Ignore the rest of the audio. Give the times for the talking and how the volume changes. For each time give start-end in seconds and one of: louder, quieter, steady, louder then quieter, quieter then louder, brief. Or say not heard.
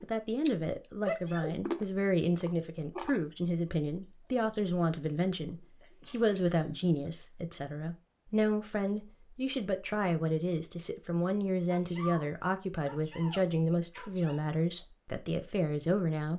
0.0-16.3 steady.